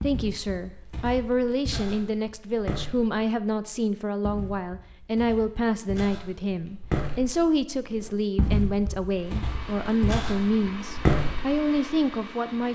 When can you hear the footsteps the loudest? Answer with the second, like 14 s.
11 s.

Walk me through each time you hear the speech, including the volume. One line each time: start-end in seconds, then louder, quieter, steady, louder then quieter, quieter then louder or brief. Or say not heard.
0.0-12.6 steady.